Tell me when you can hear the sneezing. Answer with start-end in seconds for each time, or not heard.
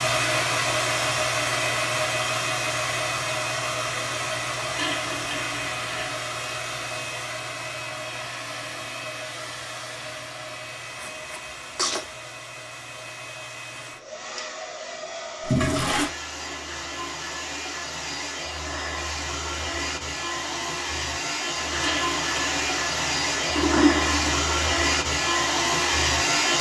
10.9-12.1.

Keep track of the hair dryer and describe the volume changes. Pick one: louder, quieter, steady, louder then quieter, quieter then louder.
quieter then louder.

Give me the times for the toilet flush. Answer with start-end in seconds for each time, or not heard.
4.7-6.2, 15.4-16.1, 21.8-24.5.